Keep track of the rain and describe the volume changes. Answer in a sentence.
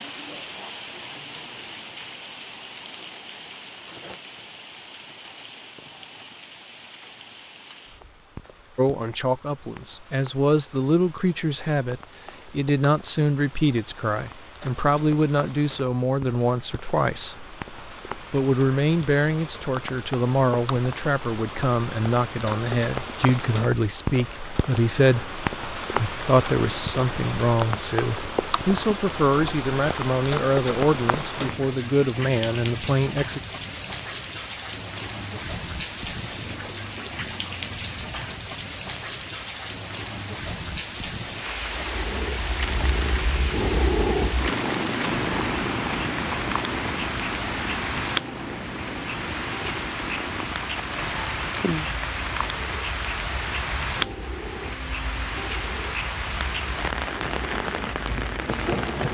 The volume of the rain goes up.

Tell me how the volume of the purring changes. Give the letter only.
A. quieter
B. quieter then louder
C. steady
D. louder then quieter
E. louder
A.